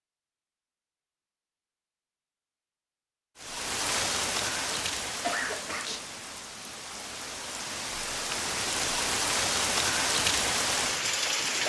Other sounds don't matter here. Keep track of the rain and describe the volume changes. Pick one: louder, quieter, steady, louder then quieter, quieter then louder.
quieter then louder.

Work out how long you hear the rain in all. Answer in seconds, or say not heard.
8 s.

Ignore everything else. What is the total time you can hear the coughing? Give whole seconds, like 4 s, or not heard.
2 s.